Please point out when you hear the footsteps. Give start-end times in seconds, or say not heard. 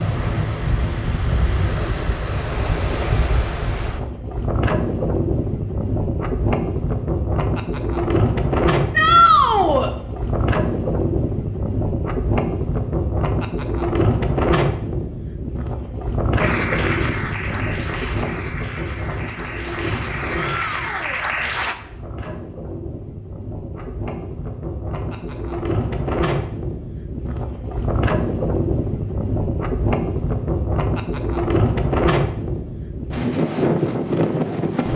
not heard.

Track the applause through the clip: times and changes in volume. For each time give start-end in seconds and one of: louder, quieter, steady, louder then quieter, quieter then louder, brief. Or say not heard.
16.4-21.8 quieter then louder.